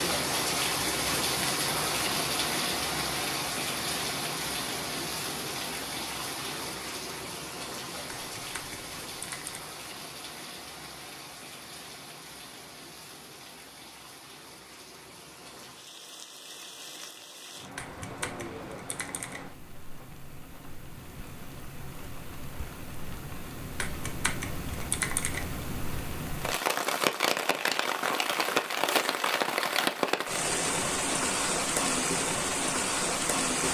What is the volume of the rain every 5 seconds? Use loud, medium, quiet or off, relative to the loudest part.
loud, medium, quiet, quiet, quiet, loud, loud.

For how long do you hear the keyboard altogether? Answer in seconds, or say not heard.
5 s.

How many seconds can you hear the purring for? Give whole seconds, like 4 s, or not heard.
not heard.